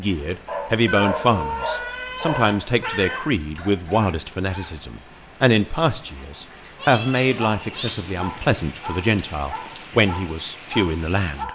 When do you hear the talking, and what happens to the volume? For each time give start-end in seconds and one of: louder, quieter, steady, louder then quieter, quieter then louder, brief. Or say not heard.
0.0-11.4 steady.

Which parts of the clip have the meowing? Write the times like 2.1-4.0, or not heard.
0.8-3.2, 6.8-8.0.